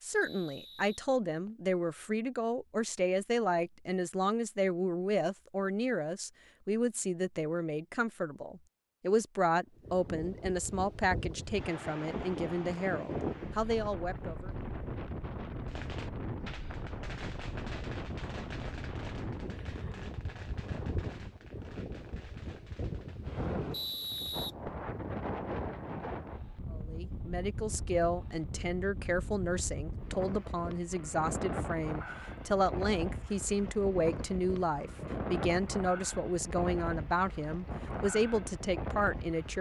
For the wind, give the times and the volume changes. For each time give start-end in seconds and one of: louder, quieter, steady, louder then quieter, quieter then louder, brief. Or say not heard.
9.8-39.5 steady.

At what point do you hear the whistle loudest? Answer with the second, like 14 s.
24 s.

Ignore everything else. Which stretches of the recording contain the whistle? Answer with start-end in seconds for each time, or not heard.
0.2-1.7, 23.7-24.5.